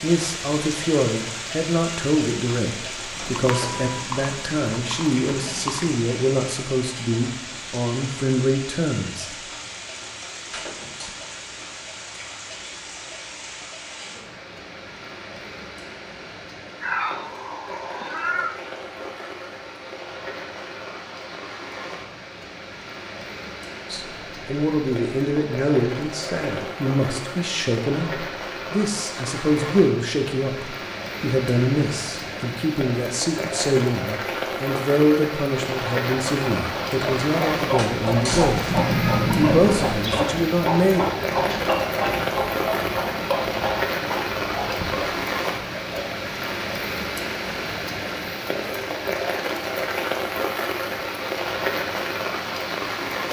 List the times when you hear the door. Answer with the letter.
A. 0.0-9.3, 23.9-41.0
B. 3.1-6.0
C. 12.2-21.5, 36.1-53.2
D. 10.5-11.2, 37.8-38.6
D.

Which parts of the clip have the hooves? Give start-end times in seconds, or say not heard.
3.1-6.0.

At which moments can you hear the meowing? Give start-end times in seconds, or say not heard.
16.8-18.6, 38.7-40.0.